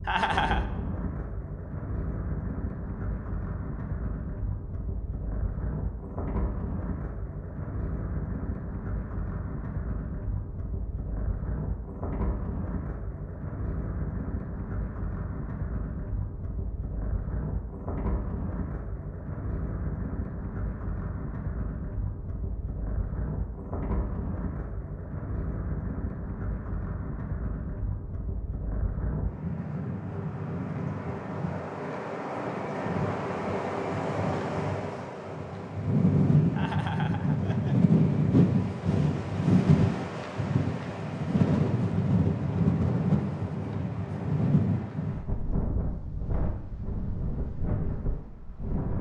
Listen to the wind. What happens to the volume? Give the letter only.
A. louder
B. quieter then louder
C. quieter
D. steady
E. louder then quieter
A.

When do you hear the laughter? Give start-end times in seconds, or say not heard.
0.1-0.7, 36.5-37.8.